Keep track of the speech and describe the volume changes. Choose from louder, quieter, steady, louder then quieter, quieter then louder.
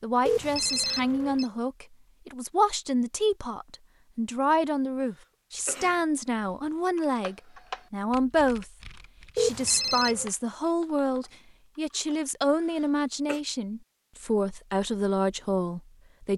steady.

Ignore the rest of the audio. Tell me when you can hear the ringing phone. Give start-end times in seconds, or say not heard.
0.2-1.4, 9.3-10.3.